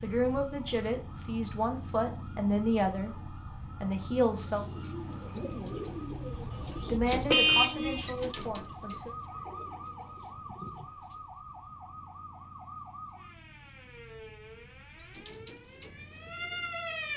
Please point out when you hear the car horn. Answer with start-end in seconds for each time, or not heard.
6.3-8.1.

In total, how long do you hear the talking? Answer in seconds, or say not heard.
7 s.